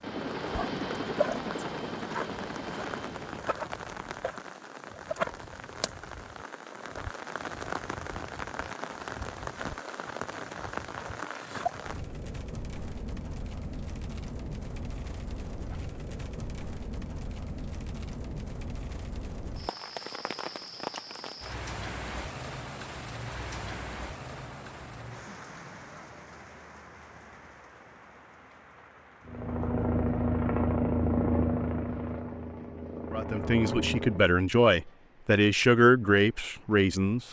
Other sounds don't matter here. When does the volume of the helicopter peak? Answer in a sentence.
The loudest moment of the helicopter is at 31 seconds.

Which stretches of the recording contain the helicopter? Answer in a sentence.
The helicopter can be heard from 0.0 to 3.6 s and from 29.2 to 34.2 s.